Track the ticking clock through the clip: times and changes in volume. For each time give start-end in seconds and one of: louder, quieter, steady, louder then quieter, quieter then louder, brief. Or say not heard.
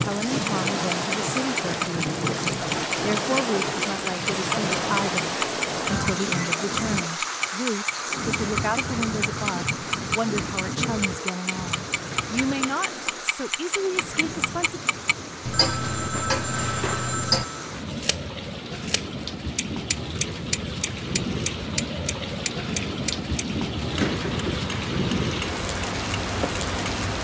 0.0-27.1 quieter.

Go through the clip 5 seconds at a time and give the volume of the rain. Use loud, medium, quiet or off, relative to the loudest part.
loud, loud, medium, medium, loud, loud.